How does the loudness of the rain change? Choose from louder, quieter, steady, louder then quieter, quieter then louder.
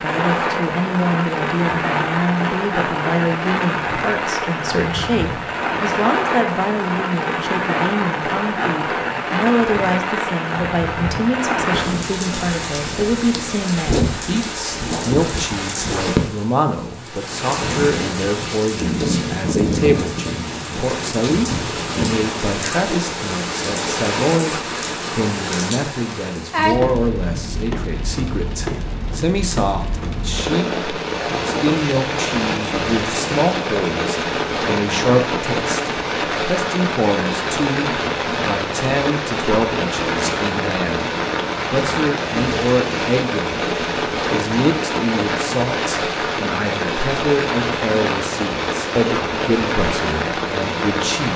steady.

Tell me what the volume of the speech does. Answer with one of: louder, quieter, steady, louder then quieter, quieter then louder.
steady.